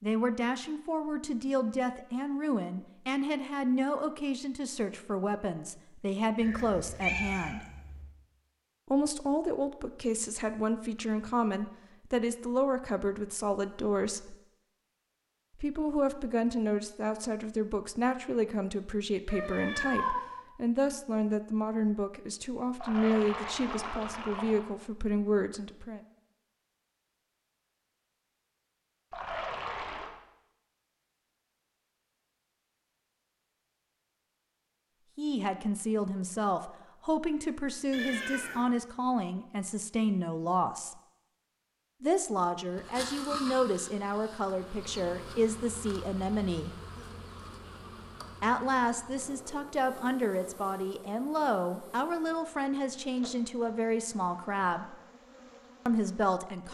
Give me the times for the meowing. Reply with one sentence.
You can hear the meowing from 6.4 to 8.0 s, from 19.2 to 20.2 s and from 37.9 to 38.6 s.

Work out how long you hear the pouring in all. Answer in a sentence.
You can hear the pouring for 3 seconds altogether.